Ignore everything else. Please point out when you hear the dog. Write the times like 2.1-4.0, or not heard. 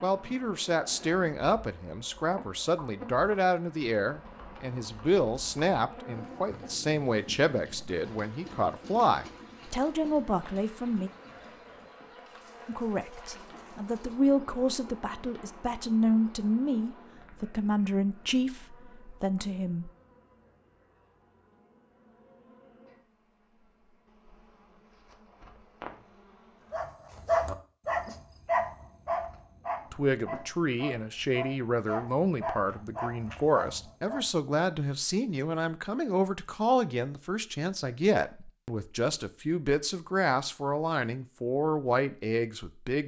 26.7-34.2.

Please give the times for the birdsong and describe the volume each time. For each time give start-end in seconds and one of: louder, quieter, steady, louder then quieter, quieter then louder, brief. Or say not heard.
not heard.